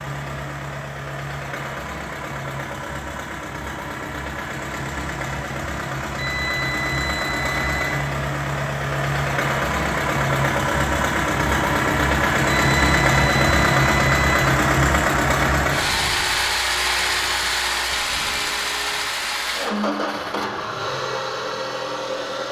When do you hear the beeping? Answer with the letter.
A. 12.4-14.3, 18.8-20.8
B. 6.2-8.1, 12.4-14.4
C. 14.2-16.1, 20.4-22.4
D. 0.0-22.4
B.